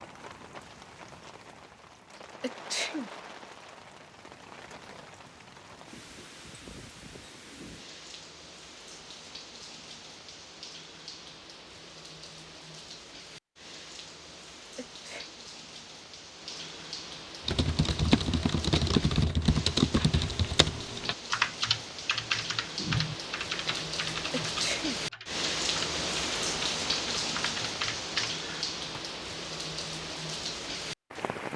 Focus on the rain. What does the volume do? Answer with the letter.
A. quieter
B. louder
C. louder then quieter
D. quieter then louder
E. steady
B.